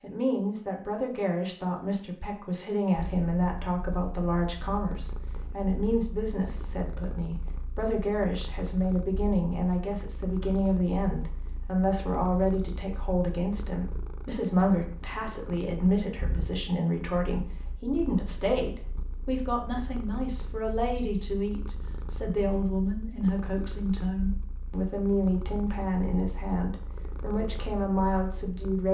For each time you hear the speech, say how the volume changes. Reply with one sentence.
The speech can be heard from 0.0 to 28.8 s, at a steady volume.